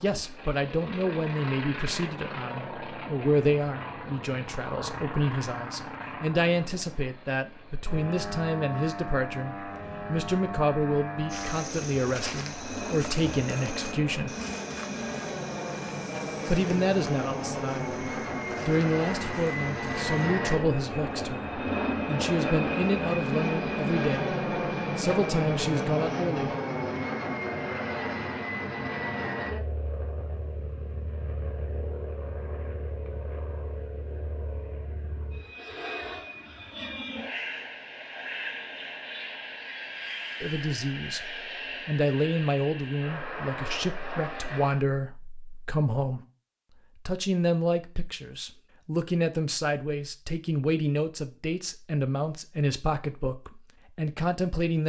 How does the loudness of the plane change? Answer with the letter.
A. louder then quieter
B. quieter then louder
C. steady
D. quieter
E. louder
A.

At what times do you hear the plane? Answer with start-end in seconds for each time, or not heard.
0.0-44.9.